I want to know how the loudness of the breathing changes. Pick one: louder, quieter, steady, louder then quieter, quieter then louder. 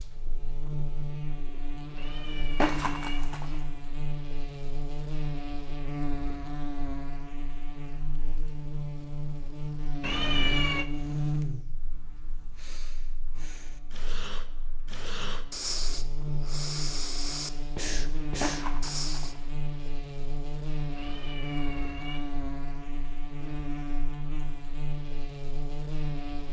louder.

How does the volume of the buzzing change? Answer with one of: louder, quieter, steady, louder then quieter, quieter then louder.
steady.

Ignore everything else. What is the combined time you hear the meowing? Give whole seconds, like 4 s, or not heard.
3 s.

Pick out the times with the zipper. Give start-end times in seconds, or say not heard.
2.5-3.5, 18.4-19.4.